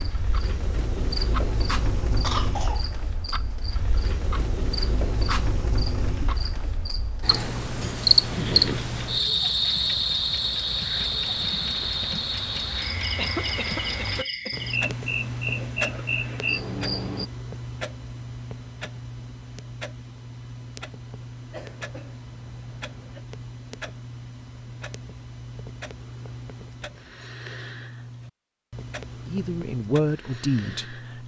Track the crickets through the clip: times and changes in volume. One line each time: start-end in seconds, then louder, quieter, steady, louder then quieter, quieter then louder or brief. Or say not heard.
0.0-17.3 louder then quieter.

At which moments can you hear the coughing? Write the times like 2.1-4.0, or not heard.
2.2-2.9, 13.2-14.6, 21.5-23.2.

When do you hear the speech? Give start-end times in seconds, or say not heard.
29.2-31.2.